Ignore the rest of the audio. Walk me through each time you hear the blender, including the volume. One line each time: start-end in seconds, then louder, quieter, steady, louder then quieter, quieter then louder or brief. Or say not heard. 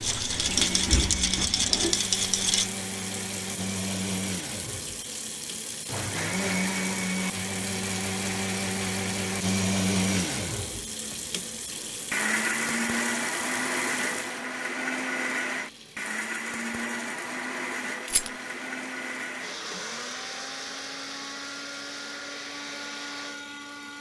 0.0-23.9 louder then quieter.